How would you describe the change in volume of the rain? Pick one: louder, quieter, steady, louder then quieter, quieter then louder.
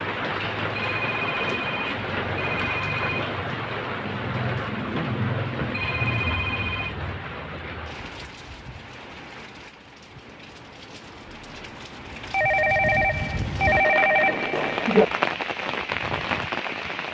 quieter then louder.